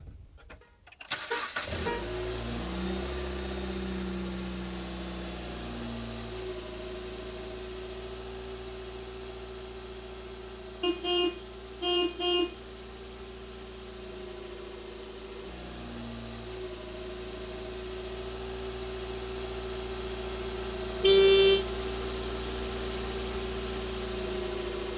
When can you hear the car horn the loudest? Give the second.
21 s.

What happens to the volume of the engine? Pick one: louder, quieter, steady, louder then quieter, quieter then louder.
quieter then louder.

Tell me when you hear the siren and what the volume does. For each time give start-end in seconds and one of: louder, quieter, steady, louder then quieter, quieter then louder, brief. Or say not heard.
not heard.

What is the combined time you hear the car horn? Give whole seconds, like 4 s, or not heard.
3 s.